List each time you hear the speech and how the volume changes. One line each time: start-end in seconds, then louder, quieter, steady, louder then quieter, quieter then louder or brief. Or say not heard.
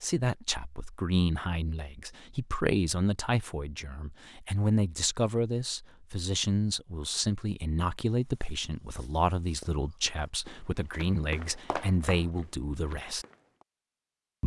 0.0-13.2 steady.